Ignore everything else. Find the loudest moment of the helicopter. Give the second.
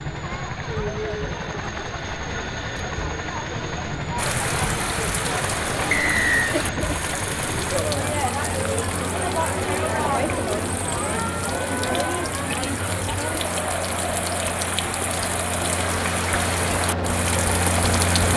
18 s.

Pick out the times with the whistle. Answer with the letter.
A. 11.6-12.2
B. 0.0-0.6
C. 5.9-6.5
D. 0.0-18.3
C.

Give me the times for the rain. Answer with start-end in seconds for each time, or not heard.
4.2-18.3.